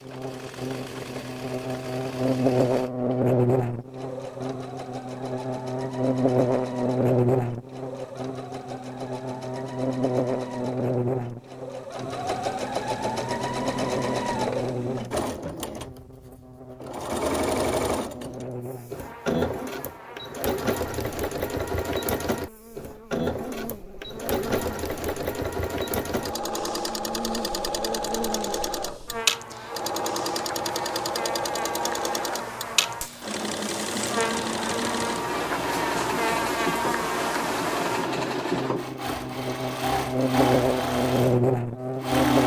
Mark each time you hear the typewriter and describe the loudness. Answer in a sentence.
The typewriter can't be heard in this clip.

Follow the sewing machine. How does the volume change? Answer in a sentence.
The volume of the sewing machine goes up.